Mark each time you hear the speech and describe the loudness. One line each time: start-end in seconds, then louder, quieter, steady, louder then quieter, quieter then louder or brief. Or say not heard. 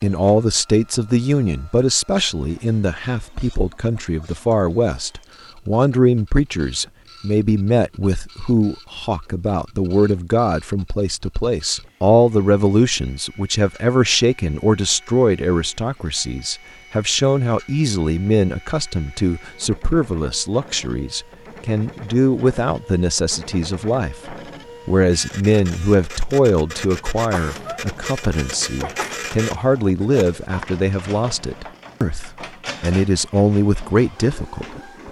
0.0-35.0 steady.